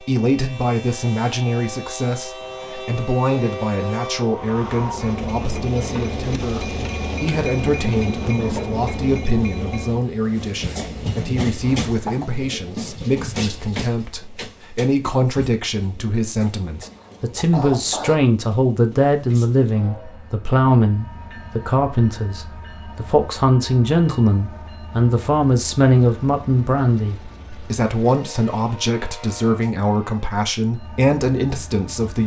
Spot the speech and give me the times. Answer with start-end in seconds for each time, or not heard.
0.0-32.2.